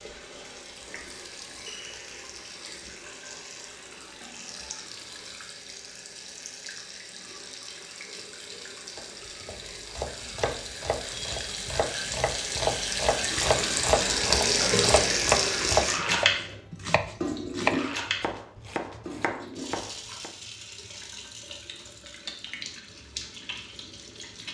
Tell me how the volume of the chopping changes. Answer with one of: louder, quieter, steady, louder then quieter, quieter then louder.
louder then quieter.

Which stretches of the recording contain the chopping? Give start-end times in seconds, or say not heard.
8.9-20.3.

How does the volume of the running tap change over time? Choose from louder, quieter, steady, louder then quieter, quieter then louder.
louder then quieter.